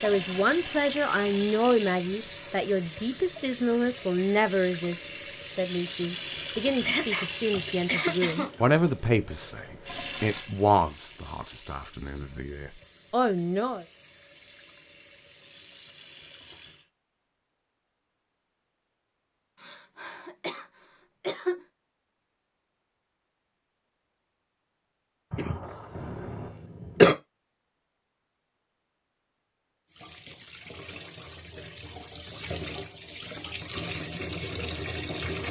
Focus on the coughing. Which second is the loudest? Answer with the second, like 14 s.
27 s.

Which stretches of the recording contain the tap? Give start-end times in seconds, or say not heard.
0.0-16.9, 29.9-35.4.